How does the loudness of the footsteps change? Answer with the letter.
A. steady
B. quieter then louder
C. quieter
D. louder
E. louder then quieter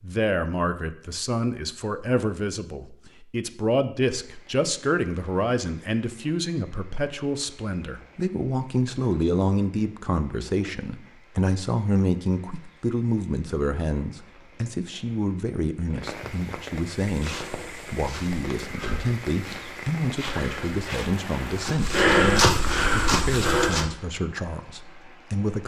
D.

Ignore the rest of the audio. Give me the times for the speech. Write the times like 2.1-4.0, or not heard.
0.0-25.6.